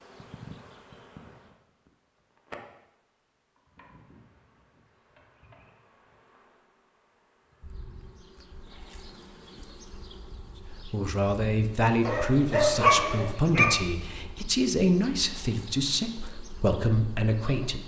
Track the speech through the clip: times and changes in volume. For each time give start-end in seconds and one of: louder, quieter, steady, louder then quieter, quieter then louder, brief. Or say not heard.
10.7-17.8 steady.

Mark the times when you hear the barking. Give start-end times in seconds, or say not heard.
12.1-13.8.